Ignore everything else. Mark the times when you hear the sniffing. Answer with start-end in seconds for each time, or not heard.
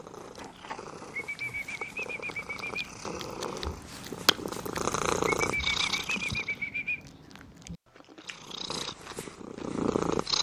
1.1-2.9, 5.3-7.0.